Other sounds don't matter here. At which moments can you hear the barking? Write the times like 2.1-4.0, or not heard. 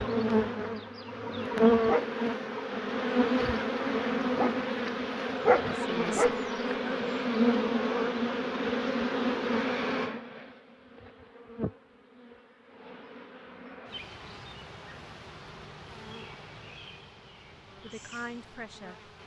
not heard.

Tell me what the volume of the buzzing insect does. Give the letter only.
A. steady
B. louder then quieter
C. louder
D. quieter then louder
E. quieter
E.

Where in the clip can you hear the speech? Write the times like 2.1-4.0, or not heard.
5.7-7.2, 17.8-19.1.